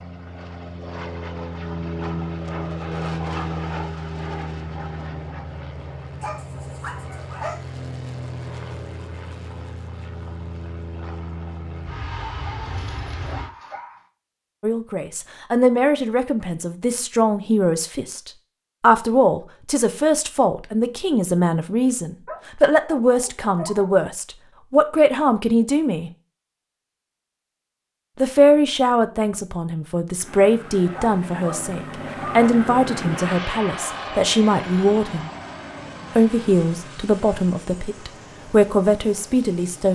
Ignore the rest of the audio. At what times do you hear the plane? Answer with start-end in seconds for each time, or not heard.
0.0-13.5, 30.2-39.9.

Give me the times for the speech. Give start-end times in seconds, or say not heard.
14.6-26.1, 28.2-35.3, 36.1-39.9.